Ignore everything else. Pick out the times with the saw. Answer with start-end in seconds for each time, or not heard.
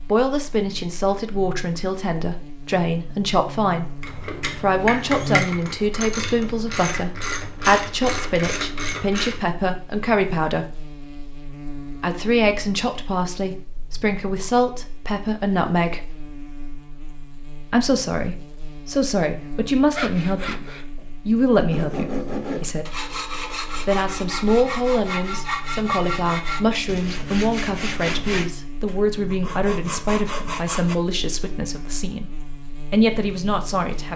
19.9-30.9.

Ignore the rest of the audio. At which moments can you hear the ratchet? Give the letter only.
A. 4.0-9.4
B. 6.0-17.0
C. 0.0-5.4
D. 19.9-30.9
A.